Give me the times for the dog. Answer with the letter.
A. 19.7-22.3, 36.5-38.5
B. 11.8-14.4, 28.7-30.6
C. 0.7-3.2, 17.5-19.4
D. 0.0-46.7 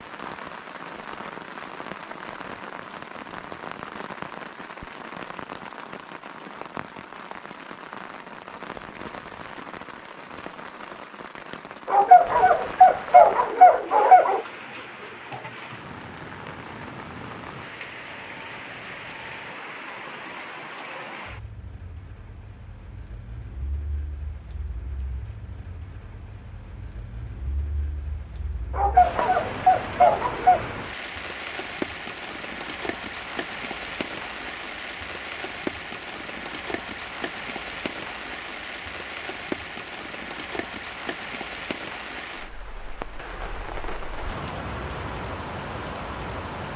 B.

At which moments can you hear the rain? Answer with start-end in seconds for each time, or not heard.
0.0-46.7.